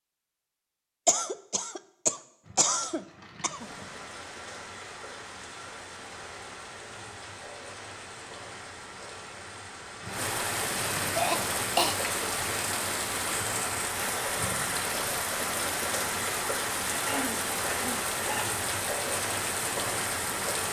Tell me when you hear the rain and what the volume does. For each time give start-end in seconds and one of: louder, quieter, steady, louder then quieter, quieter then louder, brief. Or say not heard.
3.4-20.6 louder.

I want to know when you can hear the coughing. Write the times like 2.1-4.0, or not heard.
1.1-3.6, 11.2-11.9, 16.9-18.6.